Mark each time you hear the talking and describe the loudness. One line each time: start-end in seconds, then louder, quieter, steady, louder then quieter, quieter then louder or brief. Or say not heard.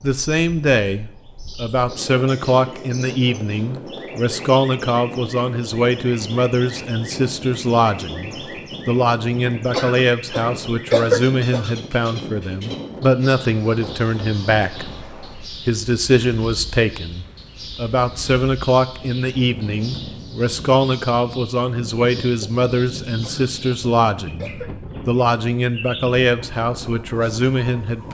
0.0-28.0 steady.